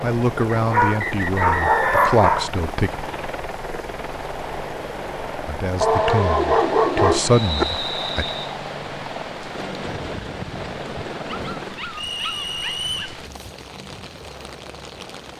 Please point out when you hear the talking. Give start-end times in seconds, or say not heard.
0.0-3.0, 5.5-8.2.